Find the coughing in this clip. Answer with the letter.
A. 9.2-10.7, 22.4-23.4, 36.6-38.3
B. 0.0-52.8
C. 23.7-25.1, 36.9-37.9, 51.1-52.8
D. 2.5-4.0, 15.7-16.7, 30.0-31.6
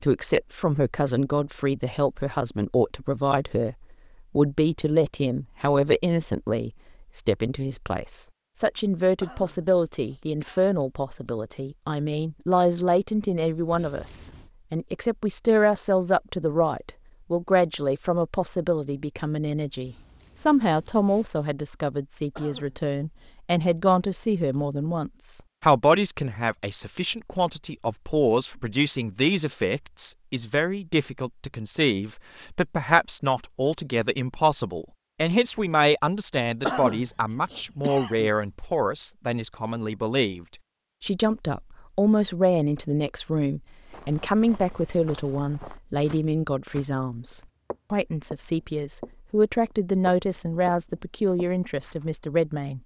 A.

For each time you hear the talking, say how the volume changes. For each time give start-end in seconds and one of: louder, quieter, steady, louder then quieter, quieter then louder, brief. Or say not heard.
0.0-52.8 steady.